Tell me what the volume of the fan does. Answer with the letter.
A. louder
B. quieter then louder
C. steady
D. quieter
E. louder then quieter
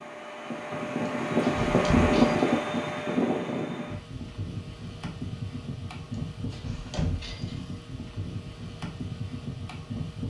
D.